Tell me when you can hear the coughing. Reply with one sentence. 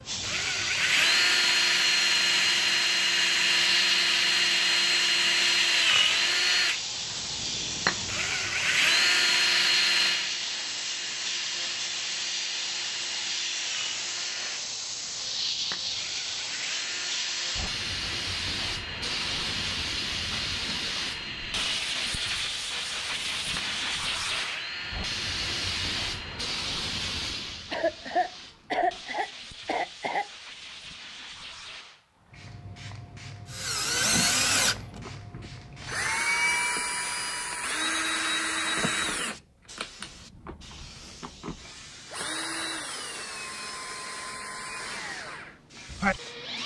The coughing can be heard from 27.7 to 30.3 s.